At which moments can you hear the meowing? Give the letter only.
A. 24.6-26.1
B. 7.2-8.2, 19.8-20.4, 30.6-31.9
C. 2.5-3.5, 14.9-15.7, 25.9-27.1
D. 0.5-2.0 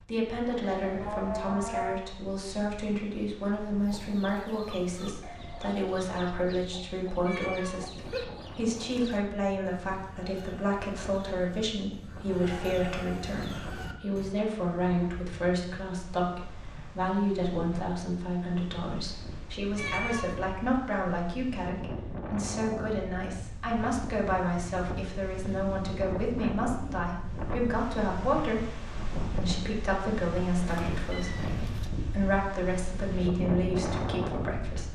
B.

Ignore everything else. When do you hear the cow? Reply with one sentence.
You can hear the cow from 0.5 to 2.0 s.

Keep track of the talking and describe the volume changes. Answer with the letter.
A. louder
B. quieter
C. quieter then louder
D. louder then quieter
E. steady
E.